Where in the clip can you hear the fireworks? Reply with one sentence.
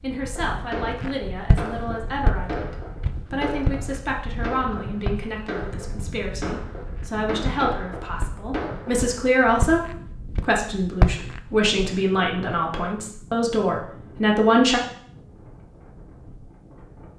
You can hear the fireworks from 0.5 to 9.1 s.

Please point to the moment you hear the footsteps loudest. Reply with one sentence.
The loudest moment of the footsteps is at 11 seconds.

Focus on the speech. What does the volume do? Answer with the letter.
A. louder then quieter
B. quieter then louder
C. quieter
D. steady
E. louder
E.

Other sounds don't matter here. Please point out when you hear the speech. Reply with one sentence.
The speech can be heard from 0.0 to 14.8 s.